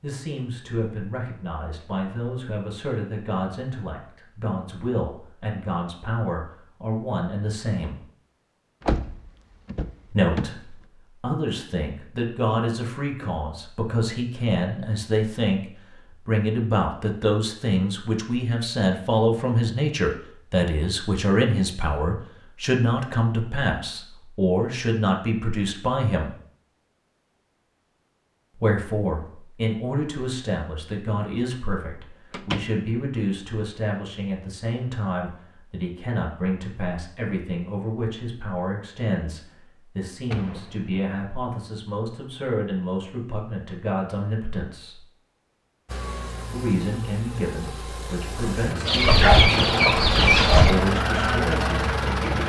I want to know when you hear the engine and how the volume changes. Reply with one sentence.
You can hear the engine from 45.9 to 52.4 s, getting louder.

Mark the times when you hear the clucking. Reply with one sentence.
The clucking can be heard from 48.9 to 52.4 s.